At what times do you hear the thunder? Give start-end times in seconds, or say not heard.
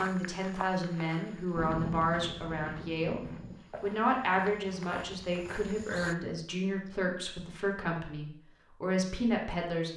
1.6-3.5.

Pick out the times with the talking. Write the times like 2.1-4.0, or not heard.
0.0-9.9.